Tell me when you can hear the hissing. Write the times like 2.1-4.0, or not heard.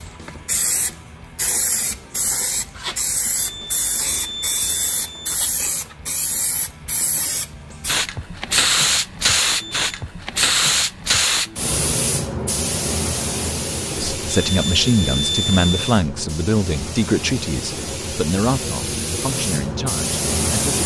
0.0-20.8.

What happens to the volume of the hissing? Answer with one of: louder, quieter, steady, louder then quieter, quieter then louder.
louder then quieter.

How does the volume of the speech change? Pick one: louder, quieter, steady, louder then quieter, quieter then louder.
quieter.